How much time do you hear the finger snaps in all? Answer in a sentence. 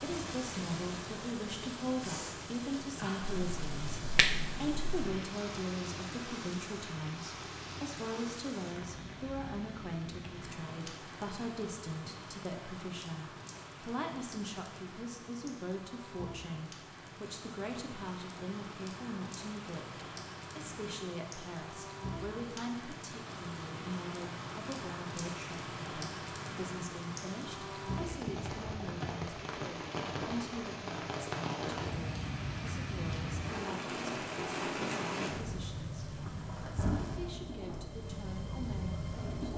The finger snaps can be heard for 2 seconds in total.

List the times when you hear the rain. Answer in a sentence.
You can hear the rain from 0.0 to 39.5 s.